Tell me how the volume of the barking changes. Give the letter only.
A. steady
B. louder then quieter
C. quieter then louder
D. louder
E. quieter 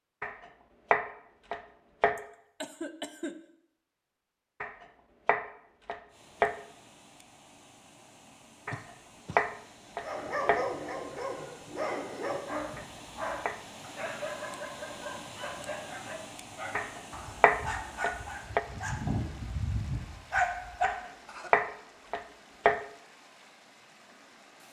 C.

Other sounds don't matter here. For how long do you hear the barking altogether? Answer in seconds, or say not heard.
11 s.